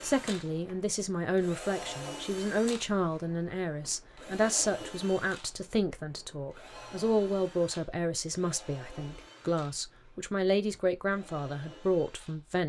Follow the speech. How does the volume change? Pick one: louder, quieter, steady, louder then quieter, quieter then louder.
steady.